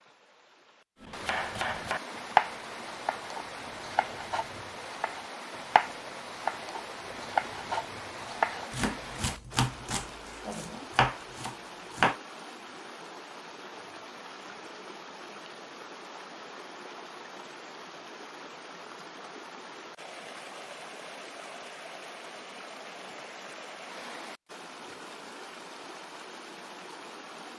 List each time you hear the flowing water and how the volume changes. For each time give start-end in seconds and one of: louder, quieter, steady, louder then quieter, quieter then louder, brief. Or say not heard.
0.0-27.5 steady.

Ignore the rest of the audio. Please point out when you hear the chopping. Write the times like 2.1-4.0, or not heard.
1.0-12.2.